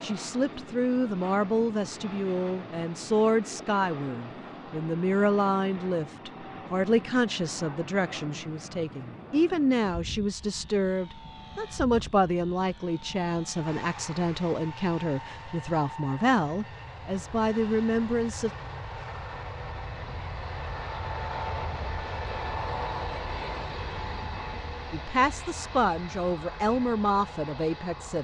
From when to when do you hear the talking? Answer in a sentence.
You can hear the talking from 0.0 to 18.5 s and from 24.9 to 28.1 s.